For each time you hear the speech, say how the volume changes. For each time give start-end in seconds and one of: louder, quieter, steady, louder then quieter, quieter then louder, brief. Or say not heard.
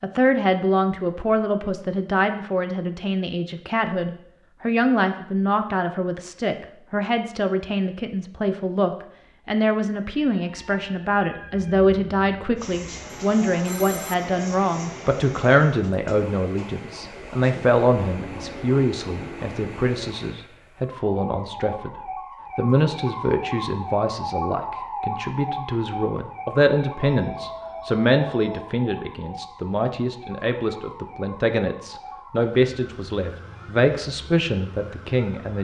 0.0-35.5 steady.